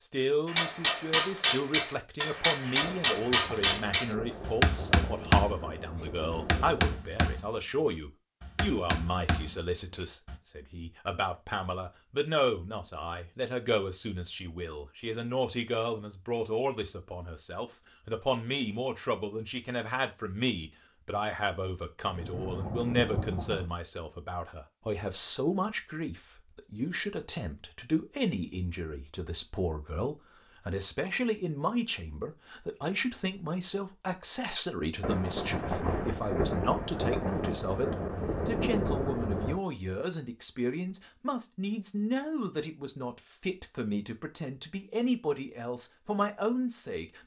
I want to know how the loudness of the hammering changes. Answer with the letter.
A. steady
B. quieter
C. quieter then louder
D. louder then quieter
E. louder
B.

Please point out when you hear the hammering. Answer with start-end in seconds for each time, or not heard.
0.5-10.3.